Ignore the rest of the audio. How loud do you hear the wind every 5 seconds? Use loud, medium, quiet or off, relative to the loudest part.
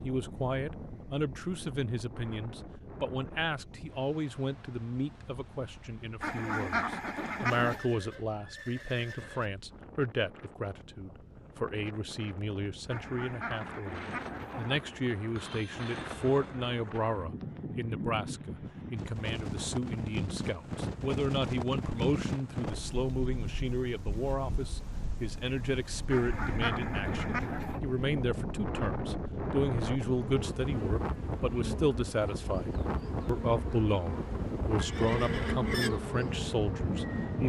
medium, quiet, medium, loud, loud, loud, loud, loud.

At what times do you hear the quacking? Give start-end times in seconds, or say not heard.
6.2-7.8, 12.8-14.8, 26.1-27.8.